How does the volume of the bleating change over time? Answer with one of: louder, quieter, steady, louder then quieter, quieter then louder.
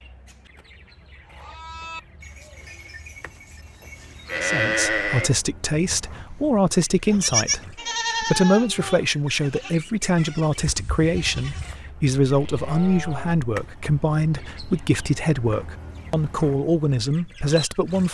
louder then quieter.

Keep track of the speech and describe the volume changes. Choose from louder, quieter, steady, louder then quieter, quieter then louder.
steady.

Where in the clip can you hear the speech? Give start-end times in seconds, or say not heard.
4.4-18.1.